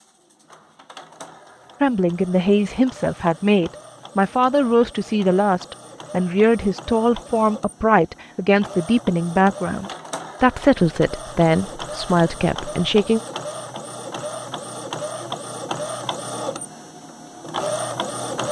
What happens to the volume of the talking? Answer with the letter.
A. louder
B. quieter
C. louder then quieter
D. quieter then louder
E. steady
E.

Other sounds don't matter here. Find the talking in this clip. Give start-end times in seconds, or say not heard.
1.8-13.2.